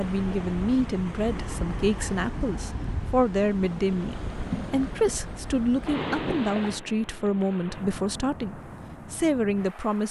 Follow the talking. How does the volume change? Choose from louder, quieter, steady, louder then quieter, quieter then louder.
steady.